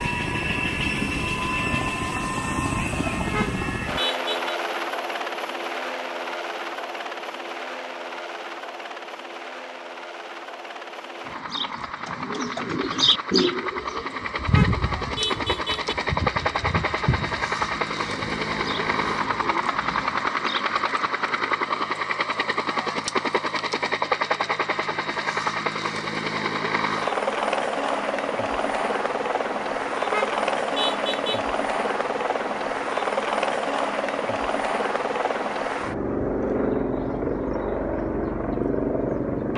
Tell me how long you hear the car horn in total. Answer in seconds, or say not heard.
4 s.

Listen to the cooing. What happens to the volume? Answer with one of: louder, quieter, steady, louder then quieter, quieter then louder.
quieter.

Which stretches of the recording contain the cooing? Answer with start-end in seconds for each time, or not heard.
11.2-21.1.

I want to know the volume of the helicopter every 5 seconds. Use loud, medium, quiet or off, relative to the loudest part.
loud, medium, medium, loud, loud, loud, loud, loud.